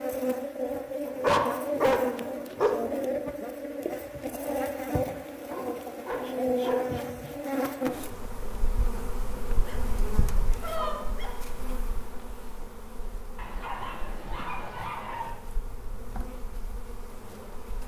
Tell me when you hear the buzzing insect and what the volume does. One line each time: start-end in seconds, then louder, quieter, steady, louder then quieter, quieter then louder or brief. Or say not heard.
0.0-17.8 quieter.